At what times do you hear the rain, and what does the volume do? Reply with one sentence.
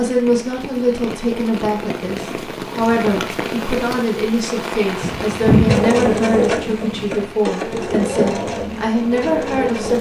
You can hear the rain from 0.0 to 9.9 s, getting louder then quieter.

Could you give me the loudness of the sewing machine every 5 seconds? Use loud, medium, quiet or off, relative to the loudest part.
off, loud.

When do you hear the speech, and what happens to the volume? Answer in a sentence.
You can hear the speech from 0.0 to 9.9 s, at a steady volume.